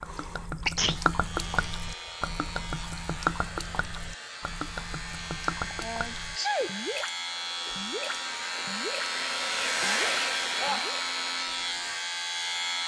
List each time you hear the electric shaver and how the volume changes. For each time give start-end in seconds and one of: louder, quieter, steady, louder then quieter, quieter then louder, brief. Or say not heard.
0.0-12.8 louder.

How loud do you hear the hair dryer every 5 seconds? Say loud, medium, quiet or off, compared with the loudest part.
medium, loud, loud.